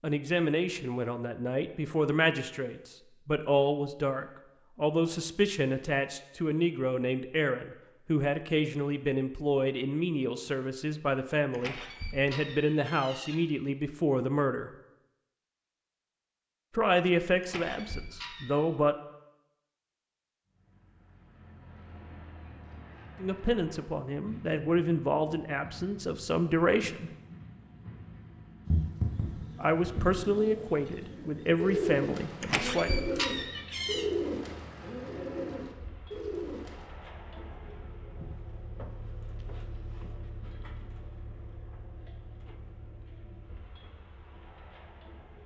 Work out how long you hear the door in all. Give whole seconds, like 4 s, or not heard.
5 s.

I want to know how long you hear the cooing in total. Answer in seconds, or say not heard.
8 s.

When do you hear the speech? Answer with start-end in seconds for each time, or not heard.
0.0-14.7, 16.8-18.9, 23.2-27.1, 29.6-32.9.